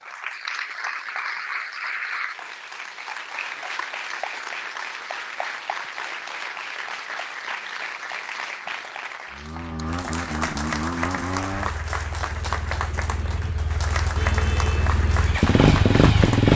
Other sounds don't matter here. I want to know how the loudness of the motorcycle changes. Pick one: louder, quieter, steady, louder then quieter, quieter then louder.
quieter then louder.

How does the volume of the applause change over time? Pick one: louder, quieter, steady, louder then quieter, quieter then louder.
steady.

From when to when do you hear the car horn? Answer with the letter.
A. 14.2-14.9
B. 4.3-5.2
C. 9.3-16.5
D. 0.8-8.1
A.